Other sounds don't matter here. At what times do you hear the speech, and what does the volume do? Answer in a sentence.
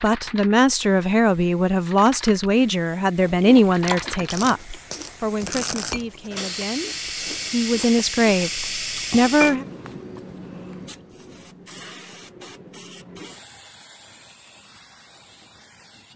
You can hear the speech from 0.0 to 9.7 s, getting quieter then louder.